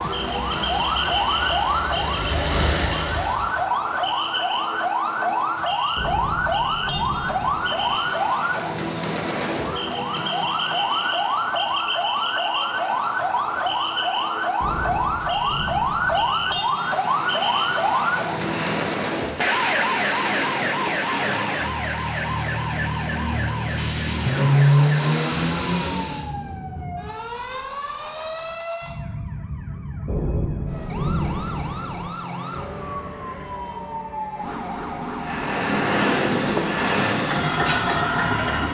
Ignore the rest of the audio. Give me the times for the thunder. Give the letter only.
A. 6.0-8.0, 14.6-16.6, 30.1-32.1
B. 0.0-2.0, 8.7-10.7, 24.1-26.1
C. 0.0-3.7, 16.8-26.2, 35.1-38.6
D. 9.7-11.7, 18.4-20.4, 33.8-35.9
A.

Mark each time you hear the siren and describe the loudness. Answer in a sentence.
The siren can be heard from 0.0 to 38.6 s, getting quieter.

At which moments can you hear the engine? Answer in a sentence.
The engine can be heard from 0.0 to 3.7 s, from 16.8 to 26.2 s and from 35.1 to 38.6 s.